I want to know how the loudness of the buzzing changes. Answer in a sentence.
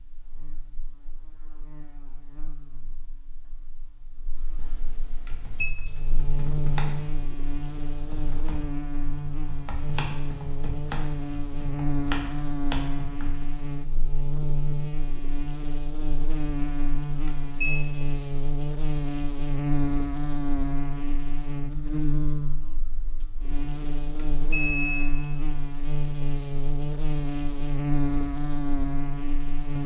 The volume of the buzzing goes up.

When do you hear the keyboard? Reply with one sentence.
The keyboard can be heard from 5.1 to 13.7 s.